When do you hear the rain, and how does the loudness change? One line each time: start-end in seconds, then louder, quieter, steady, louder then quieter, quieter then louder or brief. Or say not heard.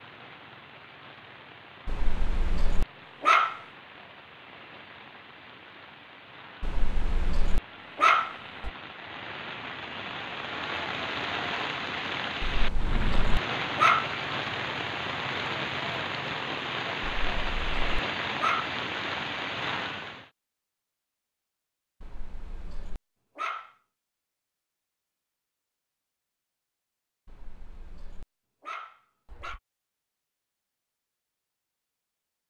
0.0-20.3 louder.